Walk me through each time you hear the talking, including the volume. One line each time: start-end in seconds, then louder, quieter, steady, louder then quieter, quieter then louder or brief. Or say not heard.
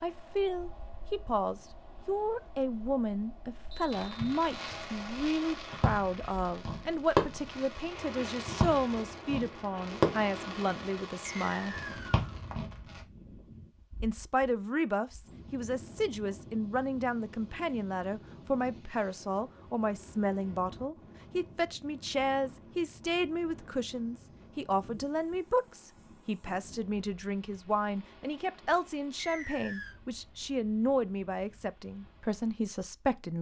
0.0-11.8 steady
14.0-33.3 steady.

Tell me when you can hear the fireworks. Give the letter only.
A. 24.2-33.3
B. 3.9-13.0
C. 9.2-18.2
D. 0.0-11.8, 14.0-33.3
B.